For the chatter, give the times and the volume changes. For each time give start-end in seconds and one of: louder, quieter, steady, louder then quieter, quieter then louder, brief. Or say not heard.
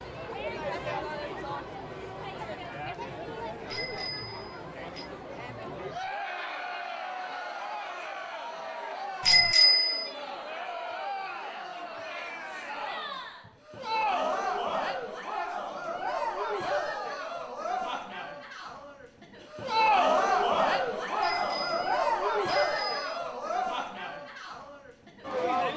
0.0-25.7 louder.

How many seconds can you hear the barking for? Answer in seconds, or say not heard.
not heard.